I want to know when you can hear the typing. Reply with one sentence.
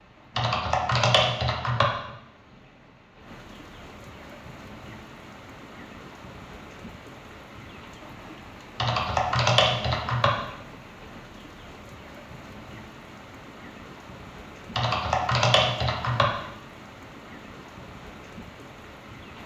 The typing can be heard from 0.3 to 1.9 s, from 8.8 to 10.3 s and from 14.8 to 16.2 s.